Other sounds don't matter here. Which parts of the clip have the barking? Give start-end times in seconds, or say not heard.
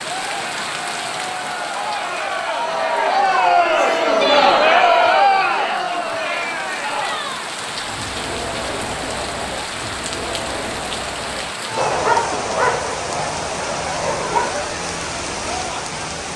11.8-14.6.